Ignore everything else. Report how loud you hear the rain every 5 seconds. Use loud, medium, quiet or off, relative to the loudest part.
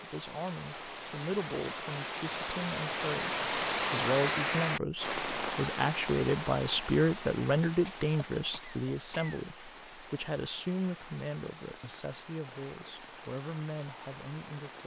loud, medium, quiet.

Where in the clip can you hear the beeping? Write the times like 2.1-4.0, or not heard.
not heard.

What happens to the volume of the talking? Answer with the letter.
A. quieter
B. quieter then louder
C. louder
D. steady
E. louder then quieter
E.